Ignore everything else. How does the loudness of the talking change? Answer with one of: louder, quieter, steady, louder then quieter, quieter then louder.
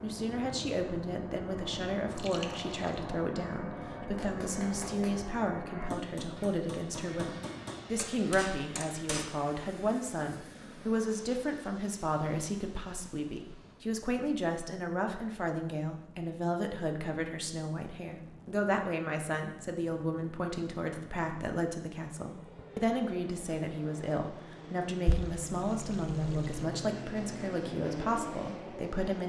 steady.